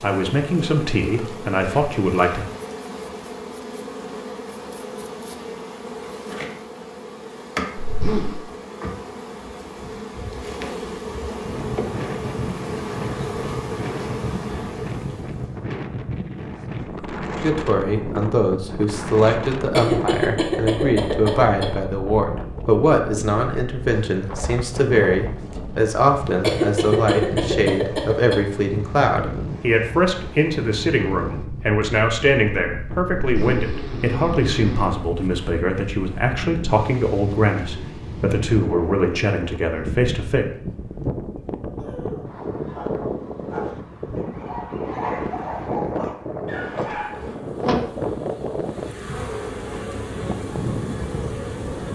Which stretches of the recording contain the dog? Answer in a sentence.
The dog can be heard from 41.8 to 47.4 s.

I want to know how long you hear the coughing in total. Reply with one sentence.
The coughing can be heard for 4 seconds in total.